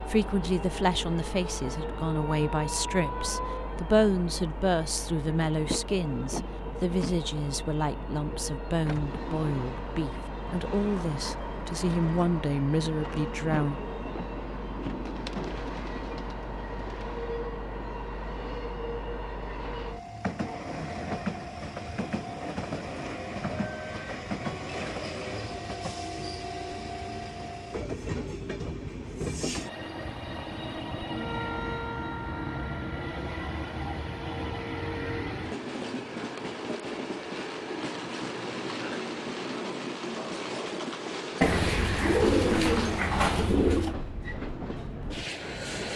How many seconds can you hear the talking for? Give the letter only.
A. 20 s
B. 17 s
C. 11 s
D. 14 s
D.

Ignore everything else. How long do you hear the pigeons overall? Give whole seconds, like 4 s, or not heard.
5 s.